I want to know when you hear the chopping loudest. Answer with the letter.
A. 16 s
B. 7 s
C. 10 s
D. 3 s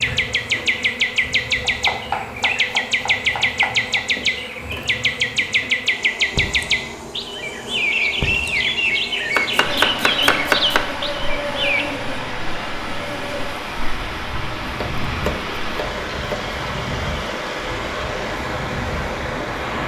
C.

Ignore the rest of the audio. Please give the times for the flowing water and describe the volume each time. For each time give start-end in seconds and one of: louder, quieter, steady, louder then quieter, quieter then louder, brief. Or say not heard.
9.6-19.8 steady.